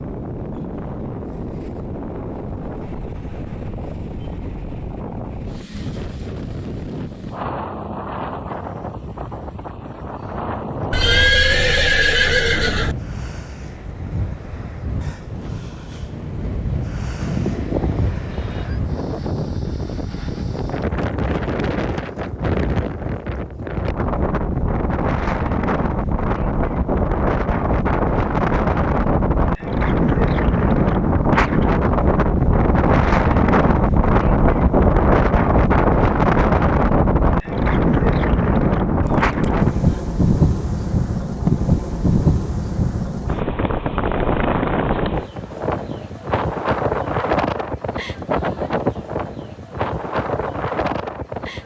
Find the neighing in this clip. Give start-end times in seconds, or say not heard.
10.9-12.9, 17.2-18.8, 39.0-40.0.